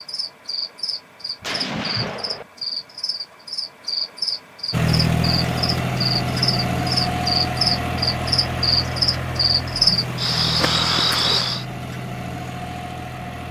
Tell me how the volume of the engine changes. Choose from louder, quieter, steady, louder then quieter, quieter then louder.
quieter.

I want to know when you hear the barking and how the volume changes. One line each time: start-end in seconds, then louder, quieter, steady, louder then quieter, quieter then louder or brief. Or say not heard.
not heard.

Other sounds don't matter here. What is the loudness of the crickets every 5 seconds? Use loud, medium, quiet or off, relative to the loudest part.
medium, loud, loud.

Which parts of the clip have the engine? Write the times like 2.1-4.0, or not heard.
4.7-13.4.